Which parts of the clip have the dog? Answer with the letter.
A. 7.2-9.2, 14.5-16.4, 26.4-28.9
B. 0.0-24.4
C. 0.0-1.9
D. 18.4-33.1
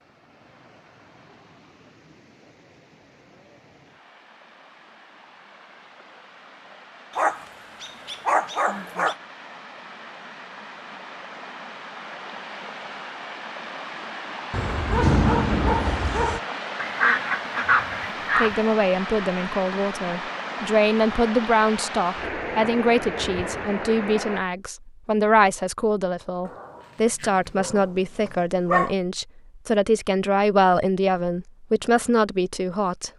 A.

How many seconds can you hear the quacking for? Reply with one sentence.
You can hear the quacking for 2 seconds altogether.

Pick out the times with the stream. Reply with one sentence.
You can hear the stream from 0.0 to 24.4 s.